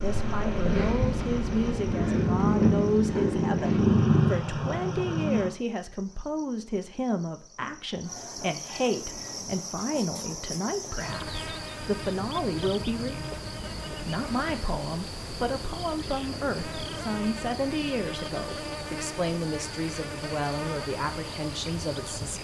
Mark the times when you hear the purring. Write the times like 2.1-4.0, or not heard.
0.0-5.5.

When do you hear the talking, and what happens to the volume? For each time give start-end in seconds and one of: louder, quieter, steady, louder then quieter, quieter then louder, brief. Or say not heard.
0.0-13.2 steady
13.9-22.3 steady.